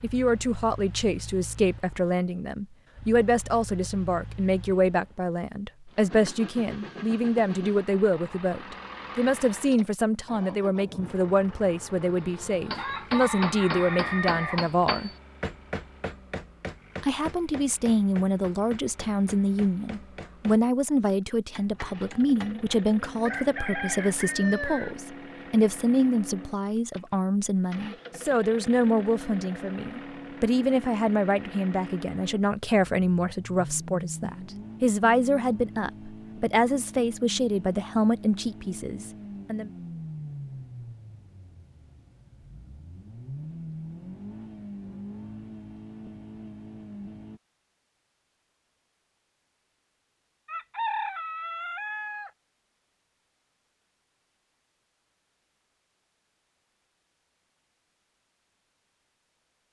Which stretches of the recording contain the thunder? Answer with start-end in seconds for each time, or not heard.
not heard.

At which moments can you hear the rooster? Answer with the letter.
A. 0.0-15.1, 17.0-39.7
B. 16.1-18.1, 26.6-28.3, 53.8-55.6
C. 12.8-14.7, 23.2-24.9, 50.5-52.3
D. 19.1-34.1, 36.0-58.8
C.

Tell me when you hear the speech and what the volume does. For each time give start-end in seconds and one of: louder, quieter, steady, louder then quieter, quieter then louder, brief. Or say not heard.
0.0-15.1 steady
17.0-39.7 steady.